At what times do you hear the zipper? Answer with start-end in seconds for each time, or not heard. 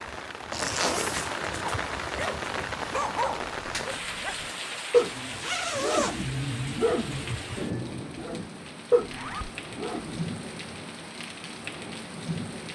0.5-1.4, 5.0-6.2, 9.0-9.5.